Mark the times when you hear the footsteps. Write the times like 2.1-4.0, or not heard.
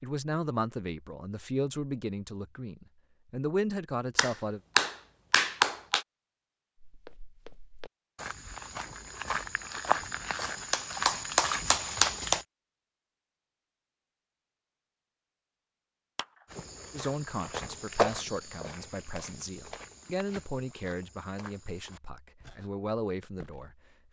6.8-12.4, 16.4-23.8.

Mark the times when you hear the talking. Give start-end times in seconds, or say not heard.
0.0-4.6, 16.9-23.7.